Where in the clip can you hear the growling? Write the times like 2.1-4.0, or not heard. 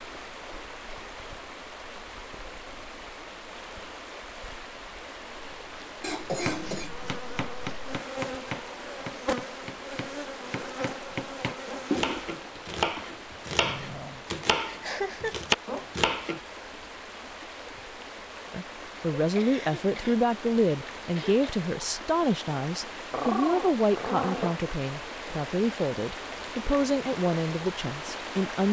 6.4-7.0, 13.6-14.2, 23.1-24.6.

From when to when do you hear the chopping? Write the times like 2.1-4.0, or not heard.
6.5-16.4.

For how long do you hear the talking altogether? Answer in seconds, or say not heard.
10 s.